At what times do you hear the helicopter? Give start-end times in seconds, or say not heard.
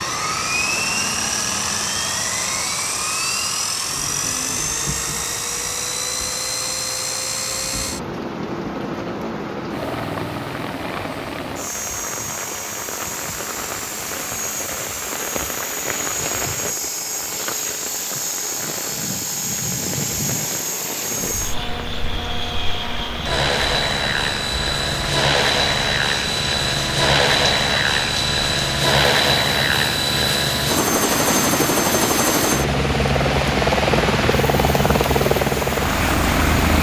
0.0-36.7.